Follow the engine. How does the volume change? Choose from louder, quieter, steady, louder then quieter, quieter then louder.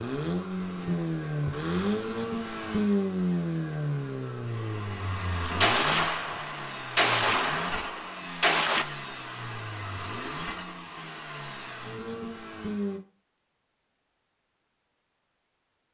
quieter.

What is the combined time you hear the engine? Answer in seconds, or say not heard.
13 s.